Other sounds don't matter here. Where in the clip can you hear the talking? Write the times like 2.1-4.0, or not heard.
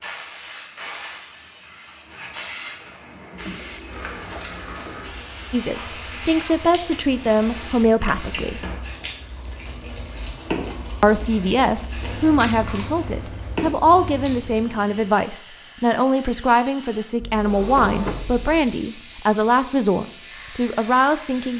5.5-8.7, 11.0-21.5.